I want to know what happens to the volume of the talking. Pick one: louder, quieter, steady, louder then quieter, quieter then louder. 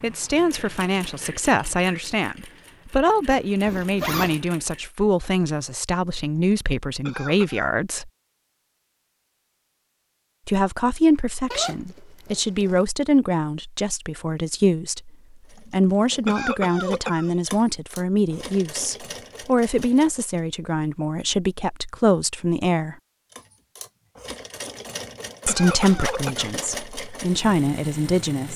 steady.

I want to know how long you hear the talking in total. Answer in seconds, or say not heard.
23 s.